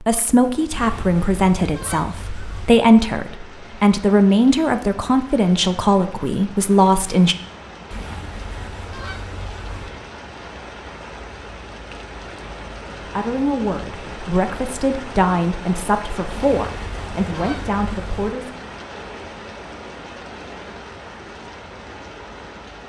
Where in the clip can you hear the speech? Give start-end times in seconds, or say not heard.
0.0-7.3, 13.1-18.6.